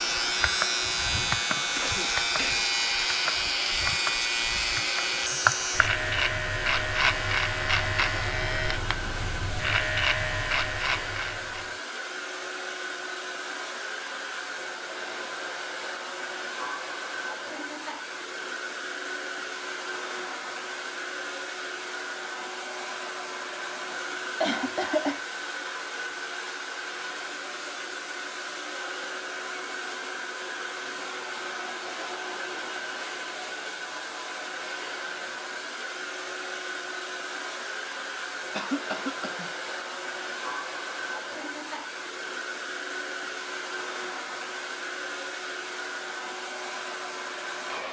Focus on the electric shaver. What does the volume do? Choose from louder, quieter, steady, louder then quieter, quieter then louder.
steady.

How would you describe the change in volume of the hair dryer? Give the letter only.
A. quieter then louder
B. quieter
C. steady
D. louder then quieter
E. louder
C.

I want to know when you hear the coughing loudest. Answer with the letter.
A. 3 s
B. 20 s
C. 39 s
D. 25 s
D.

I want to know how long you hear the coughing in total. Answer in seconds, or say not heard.
3 s.